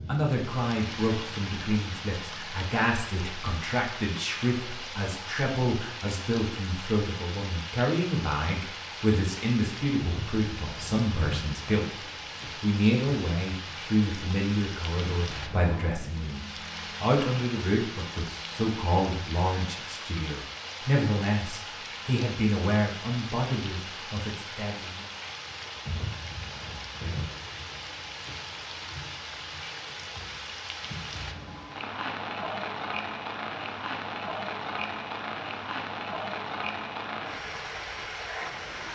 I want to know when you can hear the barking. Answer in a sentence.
The barking can't be heard in this clip.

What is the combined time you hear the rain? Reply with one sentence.
The rain can be heard for 39 seconds in total.